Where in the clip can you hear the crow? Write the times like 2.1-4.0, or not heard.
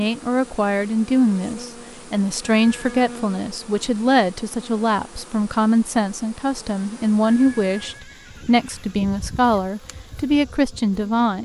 not heard.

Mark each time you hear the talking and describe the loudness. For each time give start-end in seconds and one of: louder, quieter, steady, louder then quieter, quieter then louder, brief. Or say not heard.
0.0-11.4 steady.